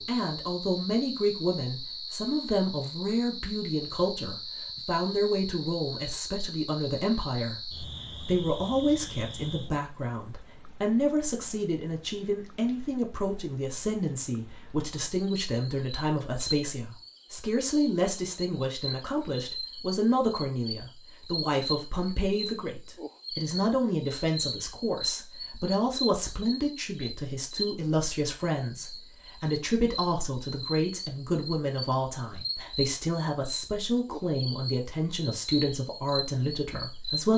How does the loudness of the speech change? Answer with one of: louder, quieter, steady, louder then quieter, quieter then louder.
steady.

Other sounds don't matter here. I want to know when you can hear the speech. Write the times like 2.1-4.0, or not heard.
0.1-37.3.